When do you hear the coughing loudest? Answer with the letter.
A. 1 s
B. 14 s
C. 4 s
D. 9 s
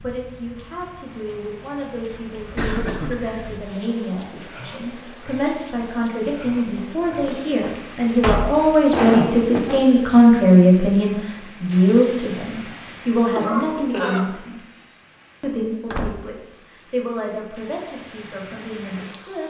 D.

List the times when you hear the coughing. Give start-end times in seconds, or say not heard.
2.5-3.1, 8.9-9.8, 13.3-14.2.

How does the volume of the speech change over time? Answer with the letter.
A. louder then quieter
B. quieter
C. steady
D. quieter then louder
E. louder
A.